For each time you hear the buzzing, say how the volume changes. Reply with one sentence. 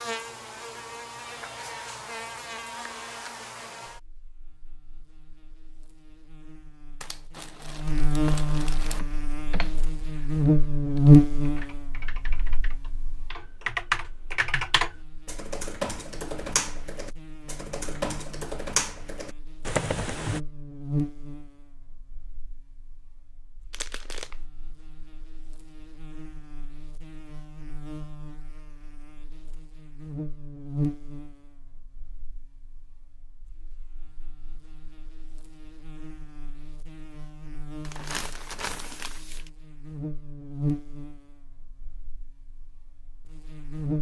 The buzzing can be heard from 0.0 to 43.9 s, getting louder then quieter.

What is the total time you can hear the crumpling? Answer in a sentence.
The crumpling can be heard for 4 seconds in total.